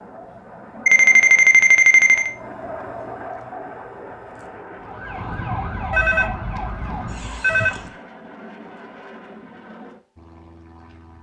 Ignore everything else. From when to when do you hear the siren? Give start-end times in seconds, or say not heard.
4.8-8.0.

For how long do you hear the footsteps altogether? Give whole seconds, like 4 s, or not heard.
not heard.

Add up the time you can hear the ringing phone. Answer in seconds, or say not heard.
3 s.